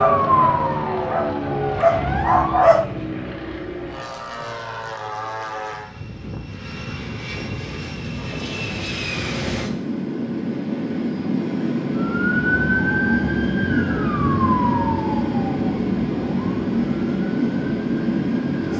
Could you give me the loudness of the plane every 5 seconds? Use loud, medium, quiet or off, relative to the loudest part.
medium, medium, loud, loud.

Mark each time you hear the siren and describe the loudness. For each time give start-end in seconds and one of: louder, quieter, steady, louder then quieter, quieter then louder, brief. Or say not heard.
0.0-2.8 brief
11.9-18.7 quieter.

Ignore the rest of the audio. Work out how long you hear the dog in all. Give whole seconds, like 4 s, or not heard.
3 s.